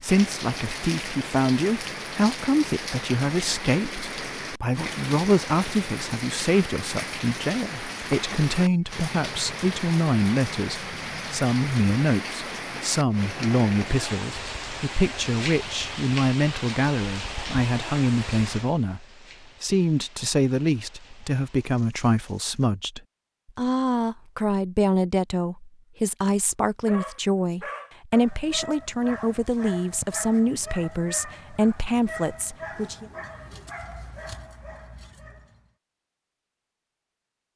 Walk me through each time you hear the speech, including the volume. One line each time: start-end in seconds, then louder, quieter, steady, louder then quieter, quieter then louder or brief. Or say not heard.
0.0-33.1 steady.